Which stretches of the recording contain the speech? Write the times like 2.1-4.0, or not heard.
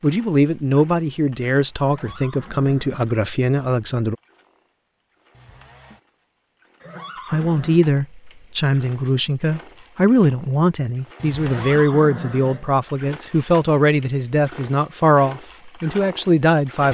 0.0-4.2, 7.3-16.8.